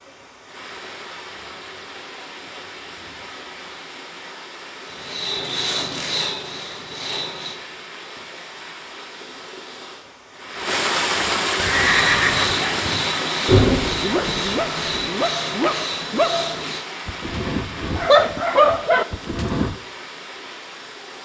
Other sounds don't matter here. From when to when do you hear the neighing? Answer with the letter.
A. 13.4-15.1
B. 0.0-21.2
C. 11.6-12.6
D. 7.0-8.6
C.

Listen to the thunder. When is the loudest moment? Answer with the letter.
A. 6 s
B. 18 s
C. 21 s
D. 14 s
D.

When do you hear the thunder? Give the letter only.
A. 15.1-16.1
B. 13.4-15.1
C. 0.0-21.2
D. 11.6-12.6
B.